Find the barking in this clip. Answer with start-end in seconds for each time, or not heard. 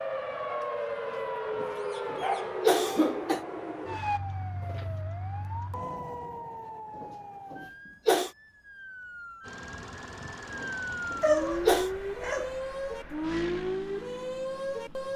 0.5-2.5, 11.2-12.5.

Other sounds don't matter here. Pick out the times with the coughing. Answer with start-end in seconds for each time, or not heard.
1.6-3.5, 7.0-8.3, 10.6-11.9.